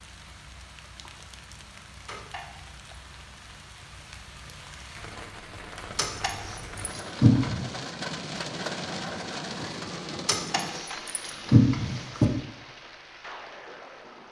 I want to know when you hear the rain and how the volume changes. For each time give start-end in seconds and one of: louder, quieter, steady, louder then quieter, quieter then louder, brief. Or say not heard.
0.0-14.2 louder then quieter.